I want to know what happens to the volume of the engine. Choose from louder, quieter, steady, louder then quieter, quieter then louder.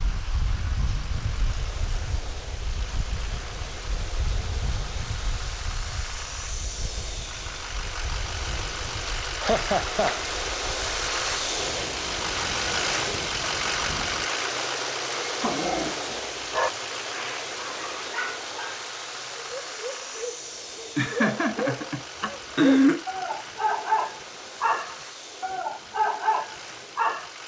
louder then quieter.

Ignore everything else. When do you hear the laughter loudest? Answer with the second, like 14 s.
23 s.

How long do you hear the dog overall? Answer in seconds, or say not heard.
12 s.